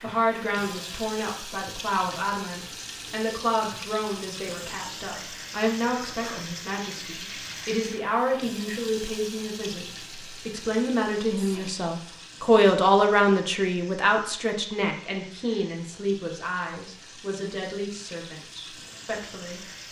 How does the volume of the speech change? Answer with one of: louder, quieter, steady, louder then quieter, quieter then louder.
louder then quieter.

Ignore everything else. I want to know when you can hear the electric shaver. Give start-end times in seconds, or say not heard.
not heard.